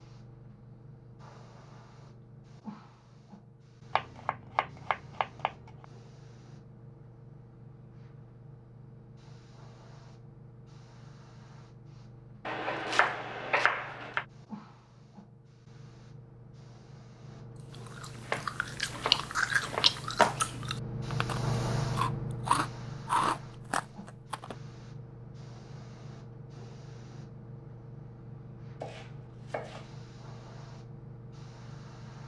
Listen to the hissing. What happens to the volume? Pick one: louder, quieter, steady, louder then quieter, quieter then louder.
louder then quieter.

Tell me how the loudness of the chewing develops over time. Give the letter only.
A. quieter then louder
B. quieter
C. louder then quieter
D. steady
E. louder
A.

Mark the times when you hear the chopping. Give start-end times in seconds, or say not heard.
3.9-5.8, 12.4-14.2, 18.2-20.0, 28.8-29.9.